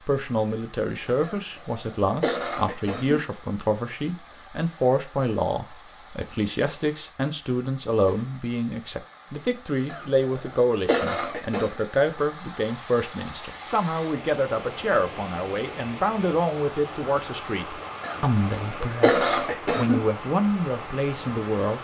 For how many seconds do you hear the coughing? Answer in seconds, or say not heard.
6 s.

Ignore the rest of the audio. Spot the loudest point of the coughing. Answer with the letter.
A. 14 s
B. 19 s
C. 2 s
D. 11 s
B.